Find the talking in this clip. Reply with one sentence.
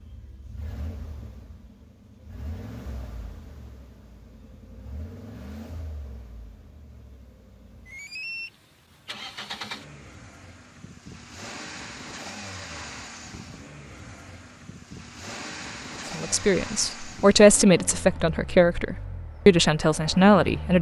The talking can be heard from 16.1 to 20.7 s.